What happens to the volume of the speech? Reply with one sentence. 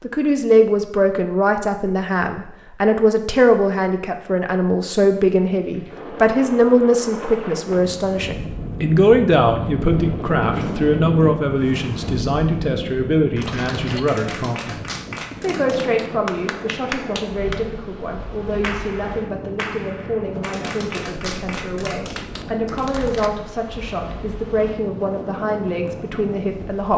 The loudness of the speech goes down.